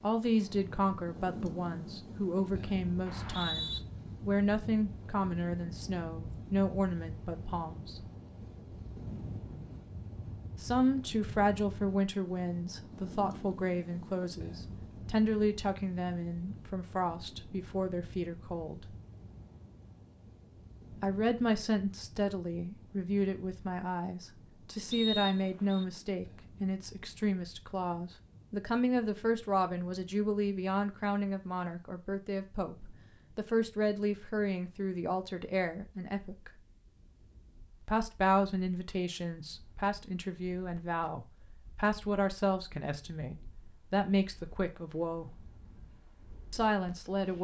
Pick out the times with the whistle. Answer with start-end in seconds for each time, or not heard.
3.0-3.8, 24.9-25.9.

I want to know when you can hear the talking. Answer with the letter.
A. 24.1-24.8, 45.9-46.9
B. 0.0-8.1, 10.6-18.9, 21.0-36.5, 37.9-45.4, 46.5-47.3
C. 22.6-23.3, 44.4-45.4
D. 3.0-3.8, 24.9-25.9
B.